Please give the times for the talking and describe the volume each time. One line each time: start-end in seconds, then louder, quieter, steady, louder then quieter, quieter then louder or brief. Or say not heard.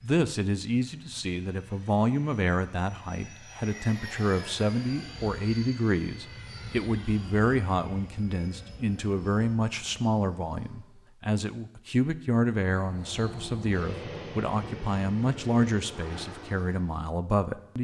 0.0-17.7 steady.